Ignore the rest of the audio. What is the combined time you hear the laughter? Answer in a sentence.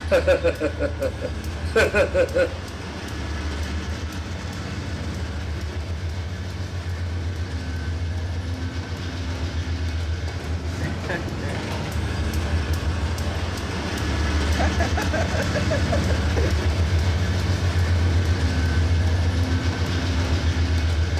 The laughter can be heard for 5 seconds in total.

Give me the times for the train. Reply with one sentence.
You can hear the train from 0.0 to 21.1 s.